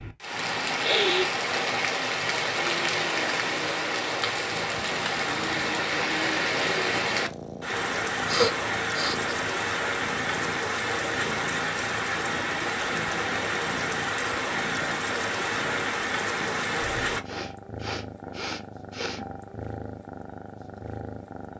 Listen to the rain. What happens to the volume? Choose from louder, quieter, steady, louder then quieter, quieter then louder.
steady.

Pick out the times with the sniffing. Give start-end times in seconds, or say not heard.
0.8-1.3, 8.2-9.3, 17.2-19.2.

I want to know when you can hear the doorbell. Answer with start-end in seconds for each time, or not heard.
not heard.